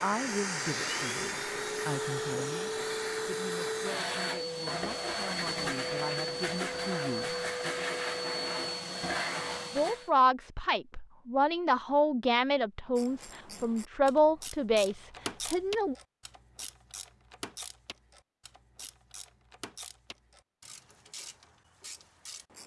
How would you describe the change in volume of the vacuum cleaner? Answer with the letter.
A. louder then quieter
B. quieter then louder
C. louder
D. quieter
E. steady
E.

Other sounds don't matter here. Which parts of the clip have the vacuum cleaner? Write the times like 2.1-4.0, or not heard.
0.0-10.1.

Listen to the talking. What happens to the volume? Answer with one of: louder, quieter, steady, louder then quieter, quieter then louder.
quieter then louder.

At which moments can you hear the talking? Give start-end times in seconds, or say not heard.
0.0-7.3, 9.7-15.9.